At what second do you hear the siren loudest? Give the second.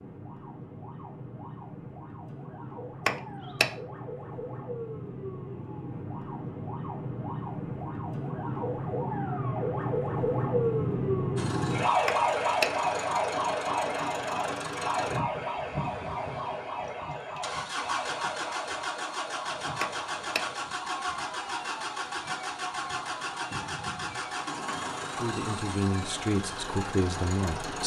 12 s.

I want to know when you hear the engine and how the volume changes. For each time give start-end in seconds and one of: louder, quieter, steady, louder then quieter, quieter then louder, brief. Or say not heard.
11.3-27.8 steady.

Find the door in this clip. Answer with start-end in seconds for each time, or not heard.
3.0-3.7, 12.1-12.7, 19.8-20.4.